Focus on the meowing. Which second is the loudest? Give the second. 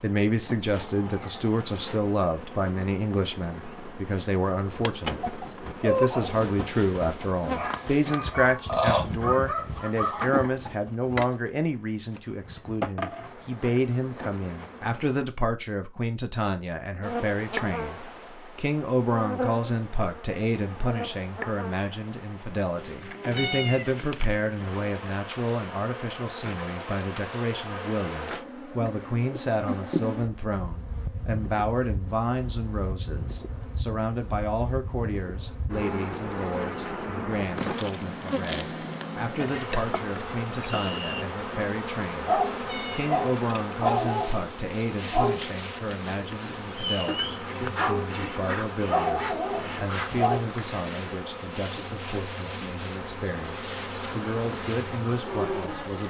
24 s.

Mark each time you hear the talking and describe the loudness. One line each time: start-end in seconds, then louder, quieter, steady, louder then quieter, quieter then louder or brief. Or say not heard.
0.0-56.0 quieter.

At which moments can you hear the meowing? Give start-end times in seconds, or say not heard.
23.3-24.0, 42.6-43.1.